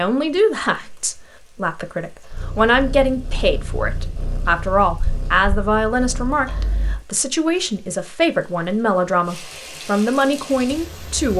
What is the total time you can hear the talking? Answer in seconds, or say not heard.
11 s.